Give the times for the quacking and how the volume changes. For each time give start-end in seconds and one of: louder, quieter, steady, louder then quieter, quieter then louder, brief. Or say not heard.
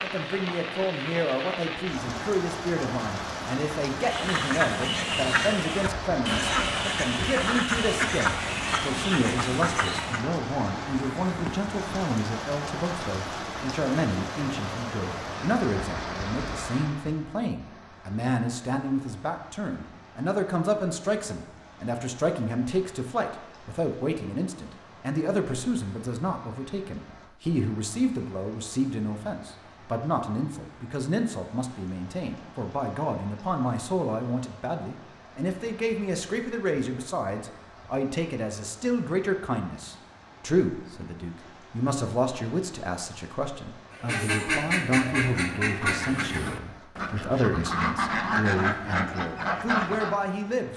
4.0-10.2 steady
43.9-50.1 quieter then louder.